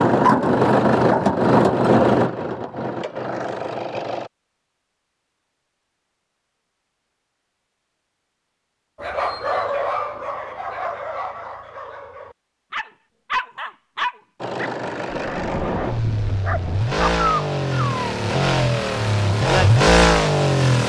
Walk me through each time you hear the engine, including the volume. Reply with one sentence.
The engine can be heard from 0.0 to 4.3 s, getting quieter; and from 14.4 to 20.8 s, getting louder.